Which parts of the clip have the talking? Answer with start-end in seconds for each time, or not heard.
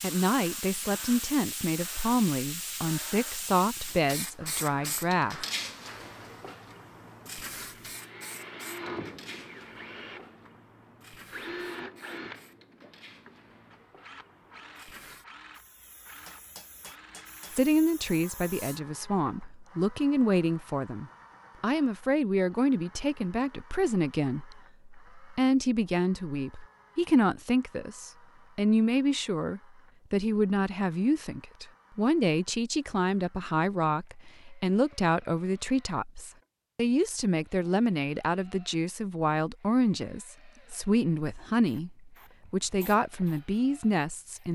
0.0-5.5, 17.5-44.4.